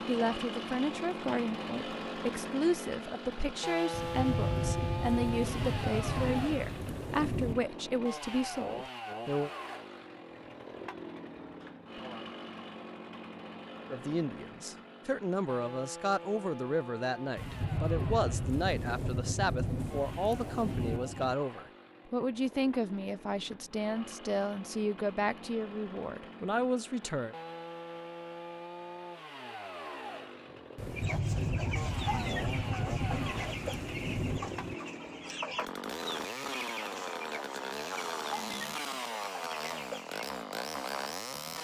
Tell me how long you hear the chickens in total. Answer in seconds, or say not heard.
9 s.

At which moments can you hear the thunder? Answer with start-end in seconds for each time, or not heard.
3.9-7.7, 17.4-21.4, 30.8-34.8.